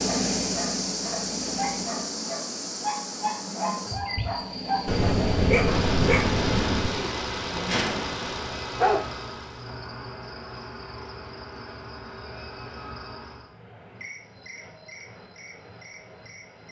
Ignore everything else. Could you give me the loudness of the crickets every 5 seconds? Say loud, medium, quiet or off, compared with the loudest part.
loud, medium, medium, quiet.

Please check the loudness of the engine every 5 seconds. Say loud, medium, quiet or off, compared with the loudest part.
loud, loud, off, off.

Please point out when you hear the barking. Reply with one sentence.
The barking can be heard from 0.1 to 9.1 s.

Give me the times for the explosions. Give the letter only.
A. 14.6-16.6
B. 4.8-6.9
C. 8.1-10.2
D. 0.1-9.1
B.